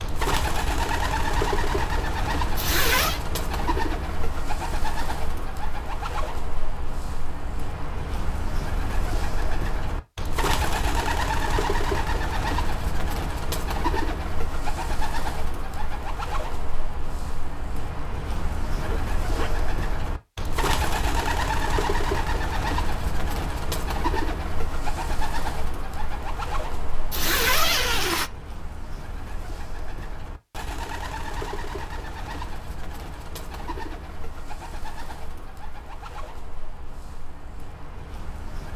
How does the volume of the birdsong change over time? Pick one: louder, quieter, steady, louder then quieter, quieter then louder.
quieter.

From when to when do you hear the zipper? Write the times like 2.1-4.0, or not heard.
2.5-3.2, 18.7-19.7, 27.1-28.3.